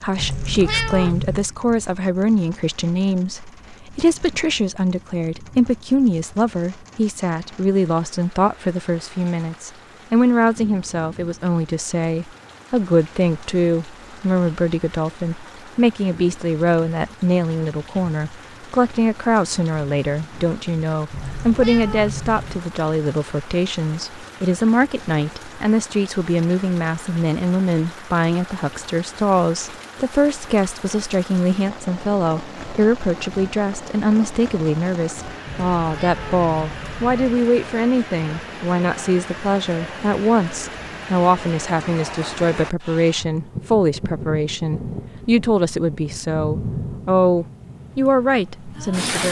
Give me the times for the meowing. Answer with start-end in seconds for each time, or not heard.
0.1-1.5, 21.1-22.6, 35.5-37.4.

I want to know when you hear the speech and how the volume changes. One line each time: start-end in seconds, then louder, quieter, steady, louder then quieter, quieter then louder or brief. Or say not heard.
0.0-49.2 steady.